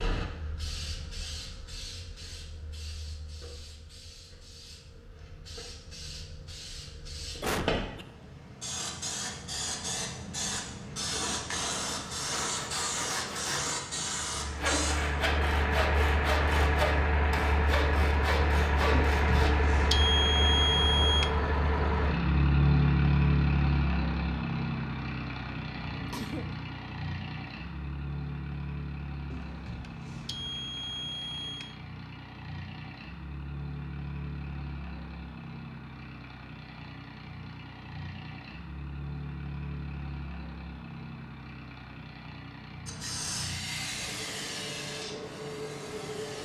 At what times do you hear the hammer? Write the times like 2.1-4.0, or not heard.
not heard.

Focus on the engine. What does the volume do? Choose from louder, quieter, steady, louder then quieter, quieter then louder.
quieter.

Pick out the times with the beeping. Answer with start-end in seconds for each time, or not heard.
18.9-21.3, 29.3-31.8.